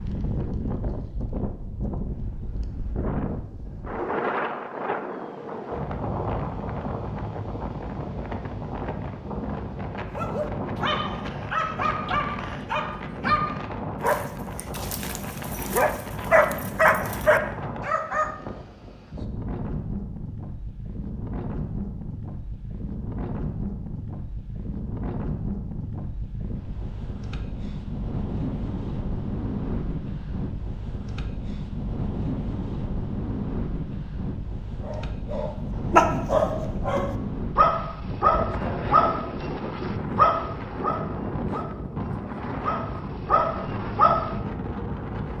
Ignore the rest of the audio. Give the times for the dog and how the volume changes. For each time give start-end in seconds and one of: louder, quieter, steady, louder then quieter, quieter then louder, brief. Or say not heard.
10.1-18.4 louder
34.9-44.4 quieter then louder.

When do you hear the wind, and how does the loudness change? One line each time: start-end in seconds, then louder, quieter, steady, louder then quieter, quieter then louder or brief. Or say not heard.
0.0-45.3 steady.